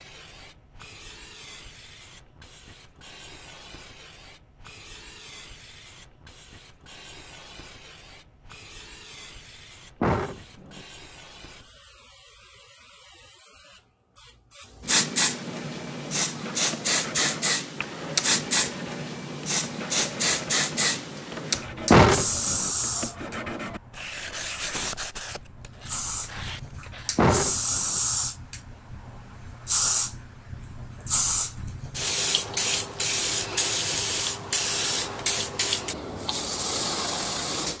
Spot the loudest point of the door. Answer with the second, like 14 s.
22 s.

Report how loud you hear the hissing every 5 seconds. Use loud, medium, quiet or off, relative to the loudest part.
quiet, quiet, medium, loud, loud, loud, loud, loud.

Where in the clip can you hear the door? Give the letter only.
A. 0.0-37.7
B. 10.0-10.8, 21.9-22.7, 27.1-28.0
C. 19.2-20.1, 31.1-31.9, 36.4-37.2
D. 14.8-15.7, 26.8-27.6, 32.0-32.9
B.